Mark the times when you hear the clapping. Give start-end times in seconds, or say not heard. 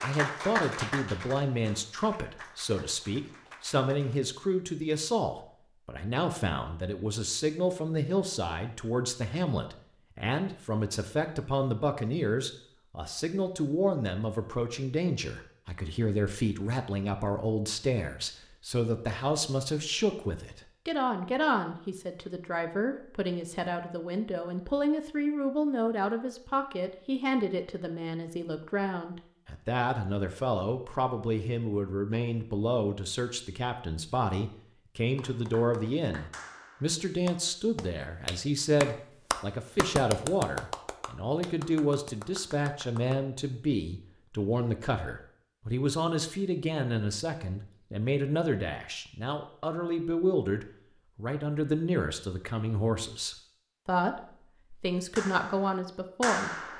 0.0-4.2, 35.1-43.2, 55.0-56.7.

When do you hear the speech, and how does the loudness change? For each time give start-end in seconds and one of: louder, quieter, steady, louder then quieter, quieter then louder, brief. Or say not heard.
0.0-56.5 steady.